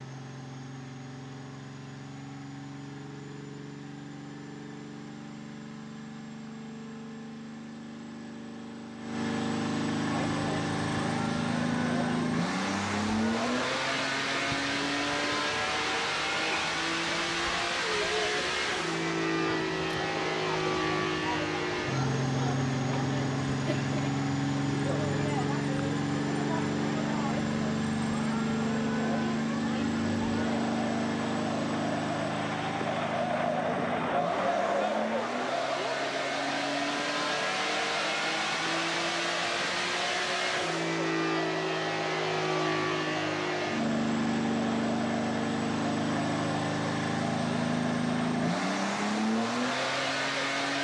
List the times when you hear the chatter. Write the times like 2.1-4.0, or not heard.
10.1-50.7.